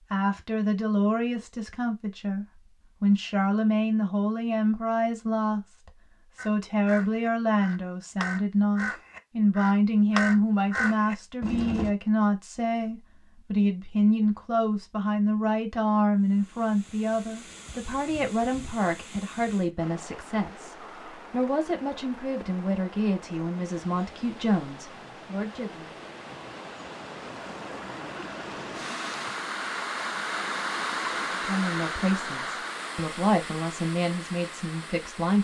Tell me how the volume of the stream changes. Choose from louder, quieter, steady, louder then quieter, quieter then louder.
louder.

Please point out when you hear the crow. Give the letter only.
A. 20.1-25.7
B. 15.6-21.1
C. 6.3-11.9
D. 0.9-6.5
C.